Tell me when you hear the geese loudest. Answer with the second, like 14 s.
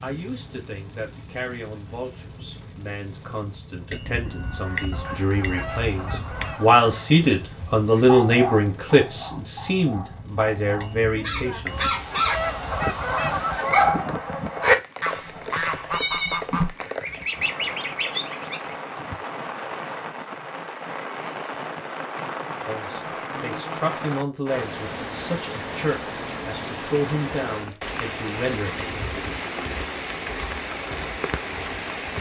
15 s.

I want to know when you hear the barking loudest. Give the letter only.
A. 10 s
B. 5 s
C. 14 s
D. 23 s
C.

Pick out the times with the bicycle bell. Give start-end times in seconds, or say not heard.
3.9-6.5, 10.8-13.0, 28.8-29.4.